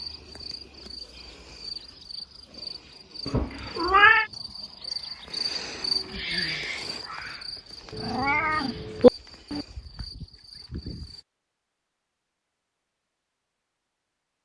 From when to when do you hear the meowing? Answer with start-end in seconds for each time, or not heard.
3.2-4.3, 7.9-9.7.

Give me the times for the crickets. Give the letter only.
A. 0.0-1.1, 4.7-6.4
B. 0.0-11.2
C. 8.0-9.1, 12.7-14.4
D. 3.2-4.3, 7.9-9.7
B.